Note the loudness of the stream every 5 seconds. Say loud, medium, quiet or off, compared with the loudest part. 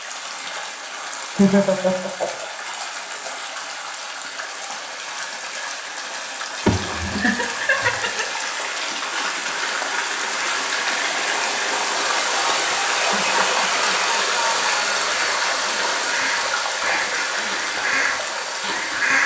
medium, medium, loud, loud.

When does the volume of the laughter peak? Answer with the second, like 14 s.
2 s.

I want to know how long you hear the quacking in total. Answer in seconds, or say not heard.
4 s.